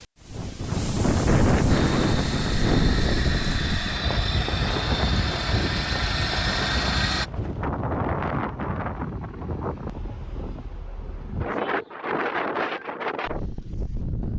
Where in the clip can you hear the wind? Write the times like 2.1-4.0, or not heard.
0.0-14.3.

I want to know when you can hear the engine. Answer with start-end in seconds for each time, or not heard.
1.6-7.3.